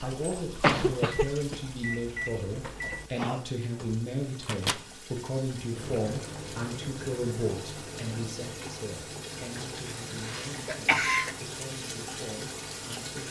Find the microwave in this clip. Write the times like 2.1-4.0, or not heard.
0.0-13.2.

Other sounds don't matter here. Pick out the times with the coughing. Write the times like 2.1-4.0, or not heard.
0.1-1.6, 9.8-11.3.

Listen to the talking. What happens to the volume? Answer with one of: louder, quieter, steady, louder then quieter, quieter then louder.
quieter.